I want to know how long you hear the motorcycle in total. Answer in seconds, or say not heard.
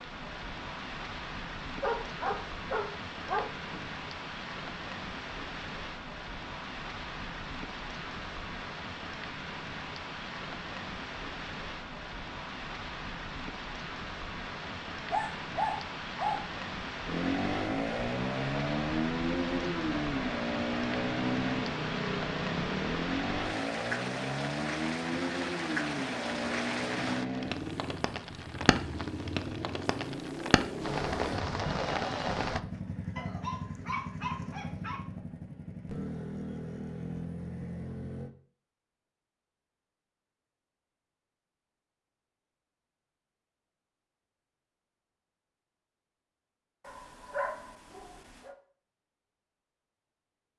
21 s.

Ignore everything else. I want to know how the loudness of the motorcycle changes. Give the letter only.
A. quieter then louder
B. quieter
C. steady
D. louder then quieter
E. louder
B.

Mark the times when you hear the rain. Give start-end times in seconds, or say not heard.
0.0-32.6.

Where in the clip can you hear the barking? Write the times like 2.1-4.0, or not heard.
1.8-3.8, 14.7-16.4, 33.1-35.0, 46.8-48.5.